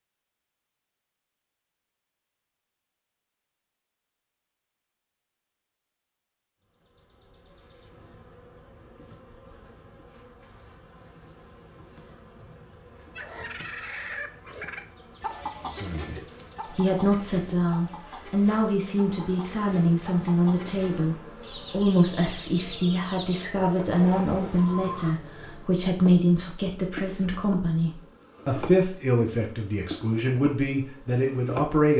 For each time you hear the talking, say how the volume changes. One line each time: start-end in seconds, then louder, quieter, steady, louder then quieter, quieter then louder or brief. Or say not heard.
15.7-31.9 steady.